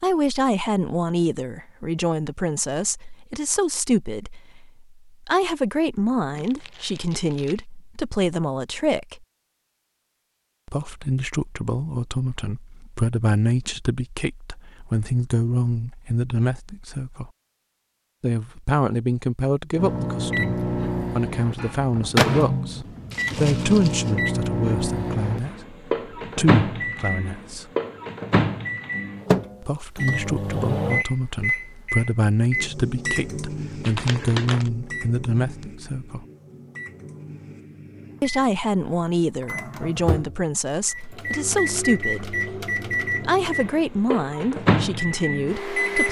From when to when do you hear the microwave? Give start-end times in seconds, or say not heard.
19.8-46.0.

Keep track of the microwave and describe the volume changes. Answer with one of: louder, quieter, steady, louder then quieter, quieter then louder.
quieter then louder.